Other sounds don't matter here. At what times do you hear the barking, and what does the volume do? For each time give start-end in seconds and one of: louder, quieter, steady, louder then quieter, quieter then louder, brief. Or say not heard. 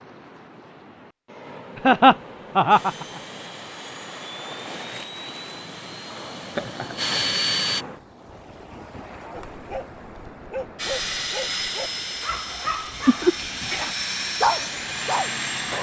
9.3-15.4 louder.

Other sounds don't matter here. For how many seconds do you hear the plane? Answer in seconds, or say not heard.
10 s.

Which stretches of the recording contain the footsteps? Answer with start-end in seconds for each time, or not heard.
not heard.